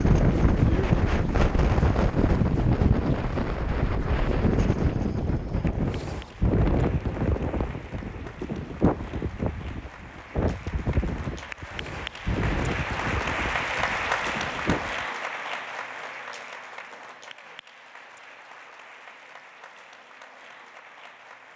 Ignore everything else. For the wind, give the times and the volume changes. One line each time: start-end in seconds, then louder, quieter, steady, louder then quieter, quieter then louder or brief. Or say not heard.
0.0-15.1 quieter.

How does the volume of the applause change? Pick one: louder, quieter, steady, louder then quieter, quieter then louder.
louder then quieter.